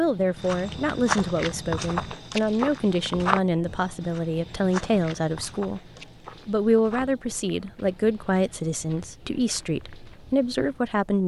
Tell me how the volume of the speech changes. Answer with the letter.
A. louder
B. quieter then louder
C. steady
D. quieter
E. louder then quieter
C.